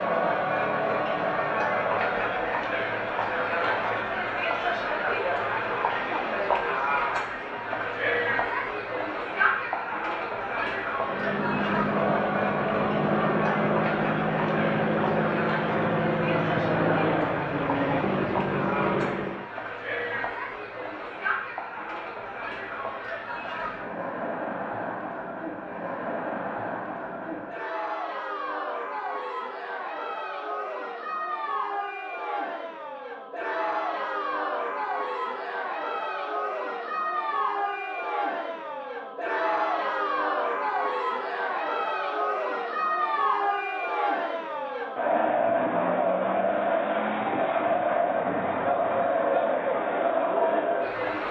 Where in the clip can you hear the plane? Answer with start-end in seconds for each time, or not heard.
10.9-19.5.